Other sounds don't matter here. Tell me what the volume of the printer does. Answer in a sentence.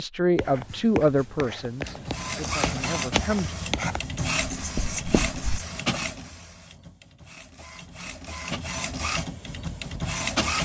The volume of the printer goes down, then up.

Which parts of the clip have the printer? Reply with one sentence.
You can hear the printer from 1.8 to 10.6 s.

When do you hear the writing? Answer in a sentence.
The writing can be heard from 0.3 to 5.7 s.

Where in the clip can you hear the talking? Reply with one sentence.
You can hear the talking from 0.0 to 3.5 s.